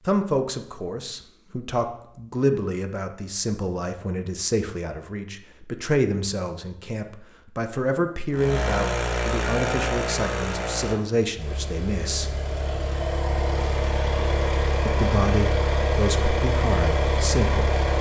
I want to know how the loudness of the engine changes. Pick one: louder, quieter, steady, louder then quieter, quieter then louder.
quieter then louder.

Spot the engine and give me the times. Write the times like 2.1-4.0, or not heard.
8.3-17.9.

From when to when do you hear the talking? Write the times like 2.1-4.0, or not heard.
0.1-12.3, 14.8-17.8.